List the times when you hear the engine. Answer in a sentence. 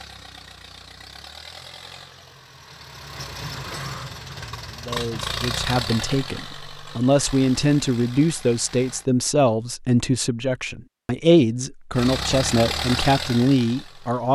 You can hear the engine from 0.0 to 9.1 s and from 11.9 to 14.3 s.